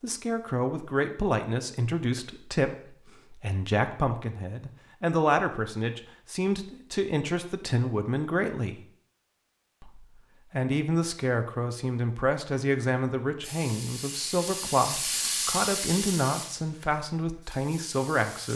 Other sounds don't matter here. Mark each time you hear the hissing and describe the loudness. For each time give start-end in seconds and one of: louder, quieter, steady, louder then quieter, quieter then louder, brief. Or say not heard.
13.4-18.5 louder then quieter.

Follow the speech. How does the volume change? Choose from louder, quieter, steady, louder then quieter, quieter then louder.
steady.